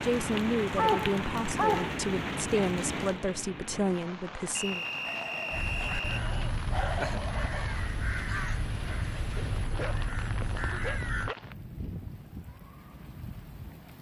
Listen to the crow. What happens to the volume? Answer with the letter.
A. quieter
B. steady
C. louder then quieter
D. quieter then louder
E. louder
B.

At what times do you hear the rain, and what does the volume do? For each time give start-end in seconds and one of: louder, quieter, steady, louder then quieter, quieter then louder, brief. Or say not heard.
0.0-13.9 quieter.